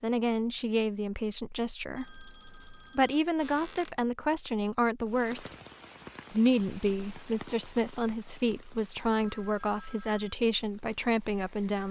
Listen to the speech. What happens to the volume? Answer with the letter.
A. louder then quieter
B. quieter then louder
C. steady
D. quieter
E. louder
C.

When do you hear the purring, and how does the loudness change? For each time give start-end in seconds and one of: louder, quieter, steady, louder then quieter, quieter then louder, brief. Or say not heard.
not heard.